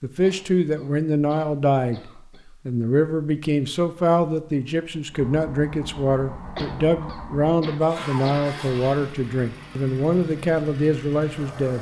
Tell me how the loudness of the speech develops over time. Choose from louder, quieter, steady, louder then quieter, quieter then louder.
steady.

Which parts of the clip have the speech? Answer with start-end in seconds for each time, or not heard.
0.0-11.7.